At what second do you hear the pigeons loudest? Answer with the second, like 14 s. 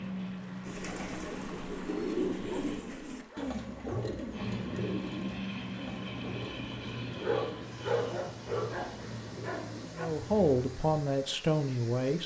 2 s.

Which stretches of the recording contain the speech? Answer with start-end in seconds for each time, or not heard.
9.9-12.2.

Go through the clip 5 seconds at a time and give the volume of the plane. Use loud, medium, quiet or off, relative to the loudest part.
loud, loud, off.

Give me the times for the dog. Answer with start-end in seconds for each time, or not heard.
2.5-4.5, 7.2-10.1.